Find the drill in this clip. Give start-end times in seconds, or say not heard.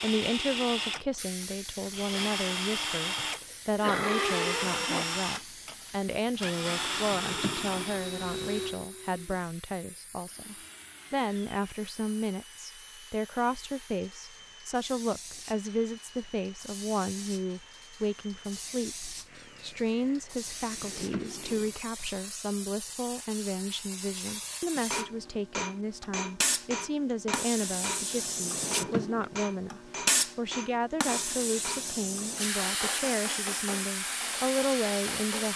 0.0-21.9.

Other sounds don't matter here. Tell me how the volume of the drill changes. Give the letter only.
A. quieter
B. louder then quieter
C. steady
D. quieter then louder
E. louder
A.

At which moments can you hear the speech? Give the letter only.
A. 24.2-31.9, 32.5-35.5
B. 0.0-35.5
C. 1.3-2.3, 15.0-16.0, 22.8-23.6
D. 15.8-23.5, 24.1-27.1
B.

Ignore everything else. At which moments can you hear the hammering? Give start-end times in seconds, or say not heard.
24.2-31.9, 32.5-35.5.